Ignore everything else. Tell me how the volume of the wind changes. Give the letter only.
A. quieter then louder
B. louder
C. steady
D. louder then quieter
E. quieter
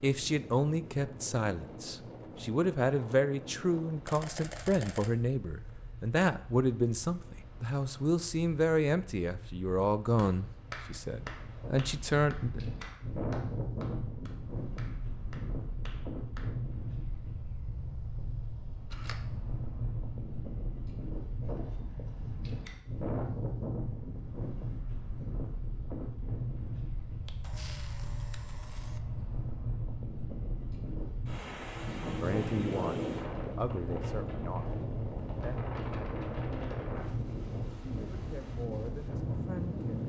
B.